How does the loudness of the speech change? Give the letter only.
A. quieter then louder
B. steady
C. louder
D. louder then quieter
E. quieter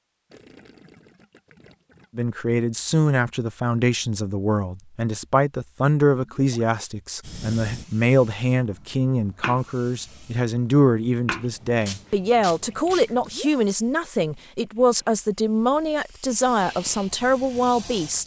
B.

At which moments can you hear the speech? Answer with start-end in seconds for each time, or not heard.
2.1-18.2.